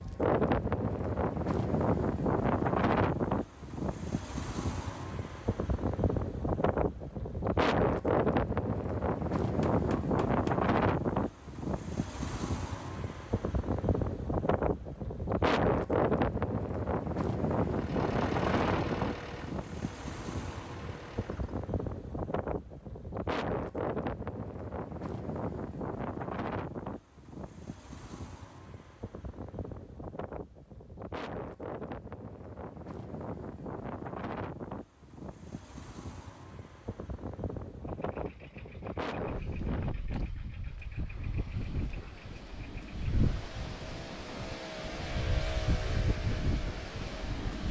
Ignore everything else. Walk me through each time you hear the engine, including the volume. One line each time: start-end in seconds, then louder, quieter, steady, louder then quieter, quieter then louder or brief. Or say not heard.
17.6-21.6 quieter
37.8-47.6 louder.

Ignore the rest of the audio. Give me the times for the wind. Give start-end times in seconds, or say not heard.
0.0-47.6.